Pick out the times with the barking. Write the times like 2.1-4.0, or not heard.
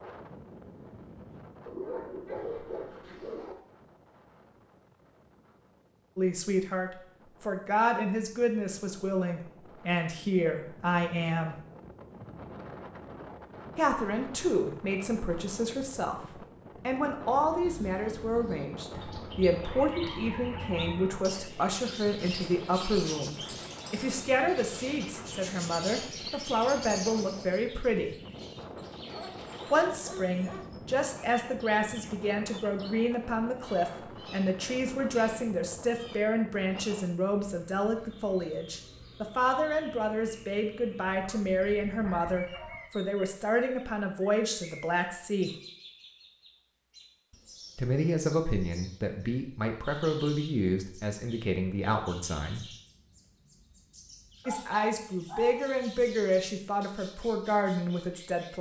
1.6-3.5, 18.9-21.2, 29.1-30.6, 41.1-42.9, 54.5-55.6.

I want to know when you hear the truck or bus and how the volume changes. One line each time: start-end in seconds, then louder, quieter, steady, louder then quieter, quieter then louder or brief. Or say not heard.
not heard.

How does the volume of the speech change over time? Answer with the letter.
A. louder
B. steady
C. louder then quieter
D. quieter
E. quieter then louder
B.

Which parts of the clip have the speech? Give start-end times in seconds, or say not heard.
6.2-11.6, 13.8-28.1, 29.7-45.5, 47.8-52.6, 54.5-58.5.